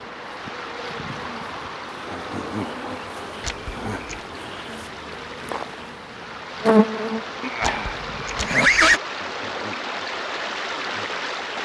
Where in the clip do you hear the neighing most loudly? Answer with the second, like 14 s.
9 s.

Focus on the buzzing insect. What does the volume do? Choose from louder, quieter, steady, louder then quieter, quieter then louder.
louder then quieter.